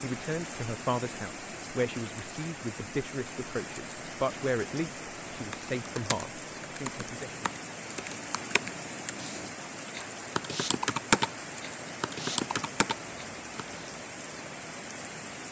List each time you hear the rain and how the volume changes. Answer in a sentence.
The rain can be heard from 0.0 to 15.4 s, at a steady volume.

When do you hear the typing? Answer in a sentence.
You can hear the typing from 5.3 to 13.9 s.